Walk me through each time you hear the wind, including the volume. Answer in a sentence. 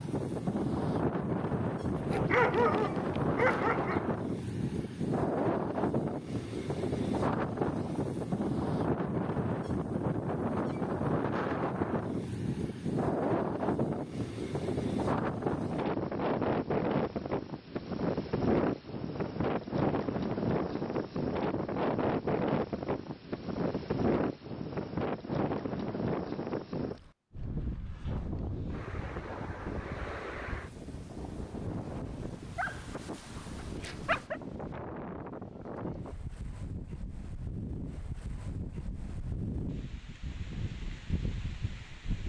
You can hear the wind from 0.0 to 42.2 s, getting quieter.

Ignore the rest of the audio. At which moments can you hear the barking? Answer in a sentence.
The barking can be heard from 1.9 to 4.0 s and from 32.5 to 34.4 s.